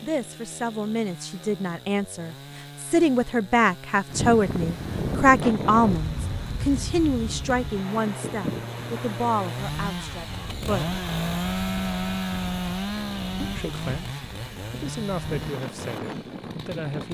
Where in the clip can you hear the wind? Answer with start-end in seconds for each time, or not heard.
4.0-17.0.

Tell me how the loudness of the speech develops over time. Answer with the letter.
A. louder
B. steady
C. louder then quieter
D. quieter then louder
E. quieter
C.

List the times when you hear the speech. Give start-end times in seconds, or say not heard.
0.0-11.0, 13.4-17.0.